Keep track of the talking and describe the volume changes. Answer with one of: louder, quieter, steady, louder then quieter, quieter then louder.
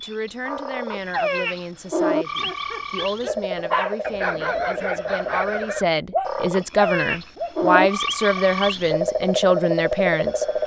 louder.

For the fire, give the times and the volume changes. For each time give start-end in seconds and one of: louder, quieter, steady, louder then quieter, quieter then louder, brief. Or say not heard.
not heard.